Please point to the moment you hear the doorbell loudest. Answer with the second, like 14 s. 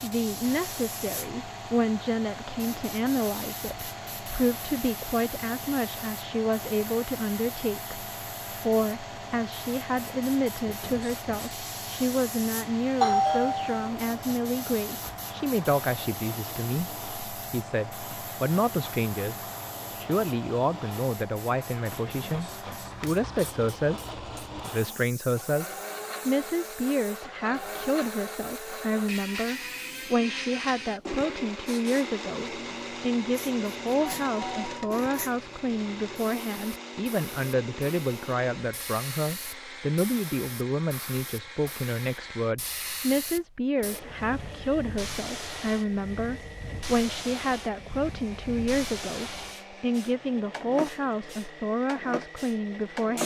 13 s.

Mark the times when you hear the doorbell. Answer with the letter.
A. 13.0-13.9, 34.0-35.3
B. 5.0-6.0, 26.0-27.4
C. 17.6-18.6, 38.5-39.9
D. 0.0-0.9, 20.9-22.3
A.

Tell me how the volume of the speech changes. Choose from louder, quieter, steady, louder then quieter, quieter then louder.
steady.